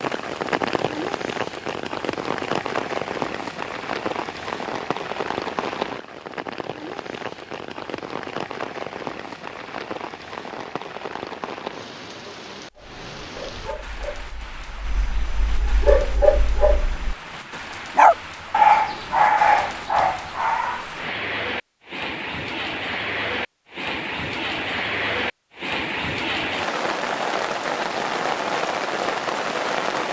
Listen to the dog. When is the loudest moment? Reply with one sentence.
The volume of the dog peaks at 19 seconds.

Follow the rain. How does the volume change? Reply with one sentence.
The volume of the rain goes down, then up.